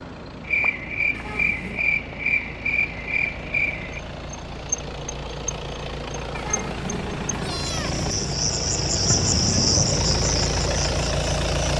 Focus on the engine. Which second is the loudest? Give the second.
11 s.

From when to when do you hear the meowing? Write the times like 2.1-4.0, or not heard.
1.1-1.9, 6.3-8.3.